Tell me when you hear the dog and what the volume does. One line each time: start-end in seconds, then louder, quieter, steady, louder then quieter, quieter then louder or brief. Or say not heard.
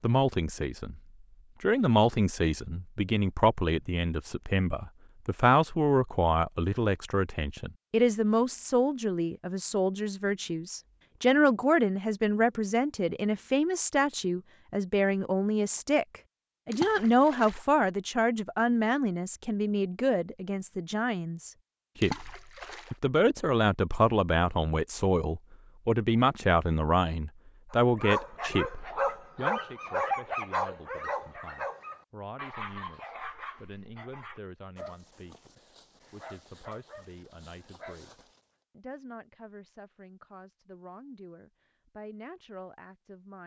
27.7-38.4 quieter.